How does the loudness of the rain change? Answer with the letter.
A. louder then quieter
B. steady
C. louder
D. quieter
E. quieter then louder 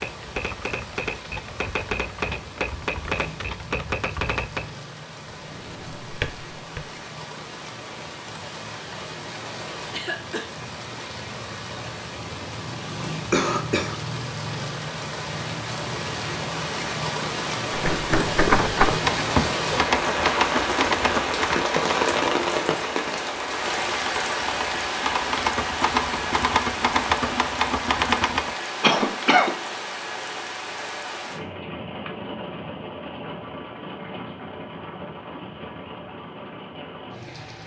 A.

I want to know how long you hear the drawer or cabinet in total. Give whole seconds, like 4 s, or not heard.
2 s.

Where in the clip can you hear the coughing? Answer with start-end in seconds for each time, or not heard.
9.9-10.5, 13.3-13.9, 28.8-29.5.